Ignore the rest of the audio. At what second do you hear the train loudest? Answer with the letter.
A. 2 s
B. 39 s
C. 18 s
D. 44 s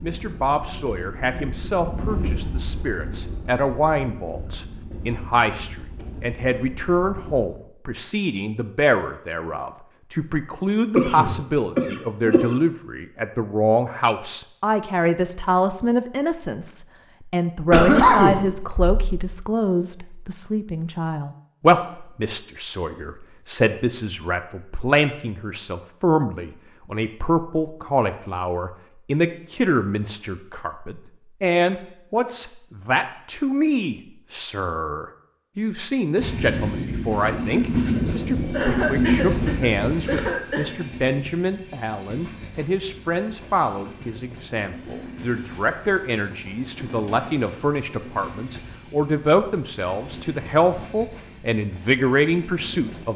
B.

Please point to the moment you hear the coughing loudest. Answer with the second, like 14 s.
18 s.